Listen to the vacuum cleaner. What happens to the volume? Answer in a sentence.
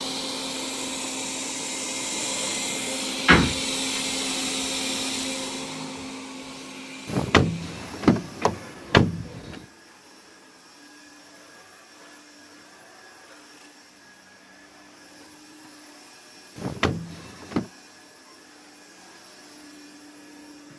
The volume of the vacuum cleaner goes down.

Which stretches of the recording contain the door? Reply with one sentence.
You can hear the door from 3.2 to 4.0 s, from 7.0 to 9.6 s and from 16.6 to 17.7 s.